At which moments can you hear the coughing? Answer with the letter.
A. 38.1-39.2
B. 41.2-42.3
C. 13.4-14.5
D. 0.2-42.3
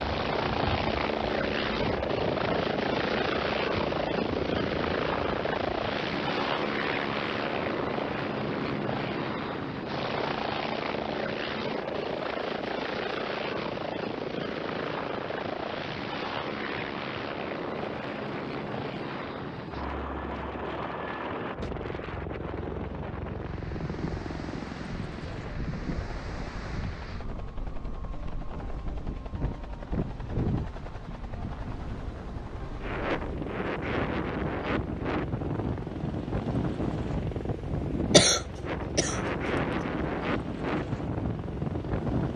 A.